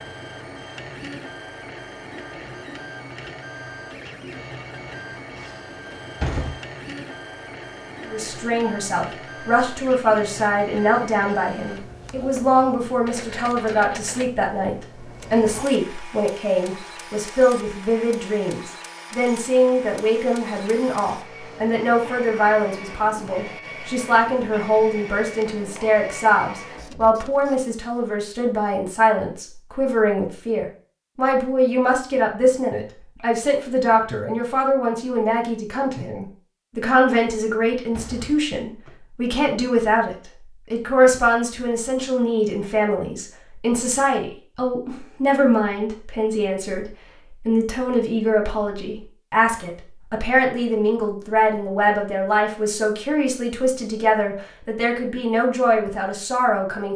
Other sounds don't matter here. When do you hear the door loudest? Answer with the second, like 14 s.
6 s.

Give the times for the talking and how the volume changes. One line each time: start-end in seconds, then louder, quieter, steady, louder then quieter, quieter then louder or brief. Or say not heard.
8.1-56.9 steady.